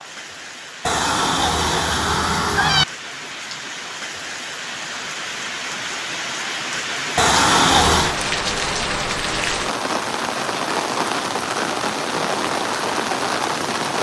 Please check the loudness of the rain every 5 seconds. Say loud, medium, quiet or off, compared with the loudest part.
medium, loud, loud.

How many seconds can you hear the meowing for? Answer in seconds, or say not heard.
3 s.